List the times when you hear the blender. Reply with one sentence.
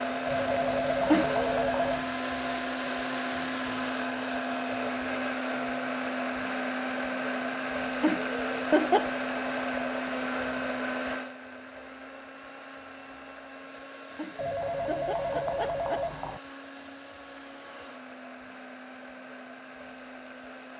You can hear the blender from 0.0 to 20.7 s.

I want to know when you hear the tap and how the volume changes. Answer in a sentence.
You can't hear the tap here.